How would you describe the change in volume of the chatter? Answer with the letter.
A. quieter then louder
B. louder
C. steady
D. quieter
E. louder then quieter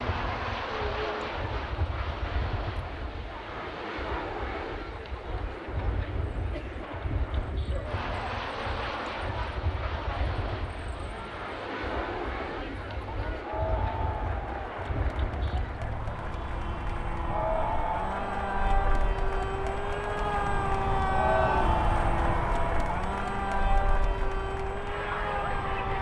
B.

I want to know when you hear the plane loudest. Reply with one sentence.
The volume of the plane peaks at 21 seconds.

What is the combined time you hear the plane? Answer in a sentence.
The plane can be heard for 26 seconds in total.